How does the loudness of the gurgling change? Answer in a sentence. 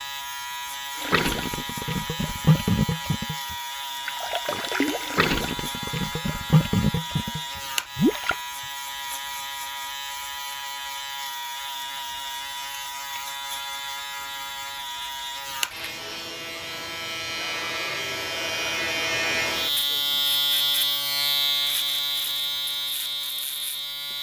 The loudness of the gurgling stays about the same.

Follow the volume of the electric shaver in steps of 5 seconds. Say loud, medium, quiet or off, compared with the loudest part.
medium, medium, medium, loud, loud.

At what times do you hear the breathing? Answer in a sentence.
The breathing can't be heard in this clip.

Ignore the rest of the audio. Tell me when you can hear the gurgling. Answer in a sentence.
You can hear the gurgling from 0.9 to 8.4 s.